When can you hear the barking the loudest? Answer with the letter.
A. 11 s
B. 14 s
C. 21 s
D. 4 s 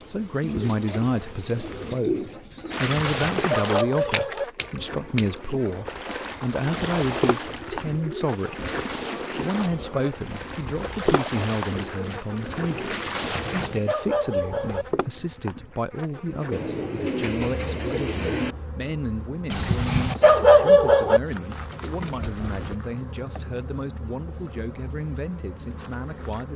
C.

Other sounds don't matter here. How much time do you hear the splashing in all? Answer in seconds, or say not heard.
11 s.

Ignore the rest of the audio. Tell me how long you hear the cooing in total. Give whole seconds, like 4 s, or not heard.
10 s.